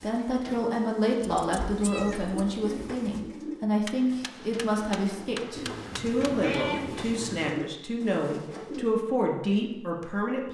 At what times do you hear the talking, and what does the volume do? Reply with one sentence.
You can hear the talking from 0.0 to 10.5 s, at a steady volume.